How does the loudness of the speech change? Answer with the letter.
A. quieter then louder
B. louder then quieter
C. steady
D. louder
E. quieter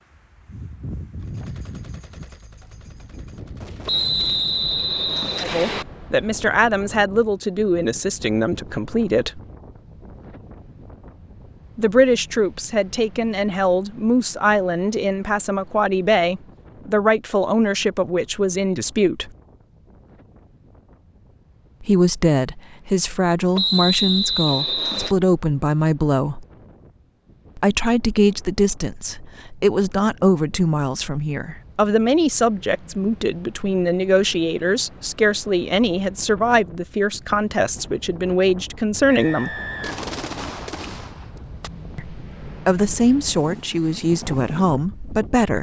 C.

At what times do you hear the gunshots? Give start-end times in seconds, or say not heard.
1.1-4.5, 39.8-41.7.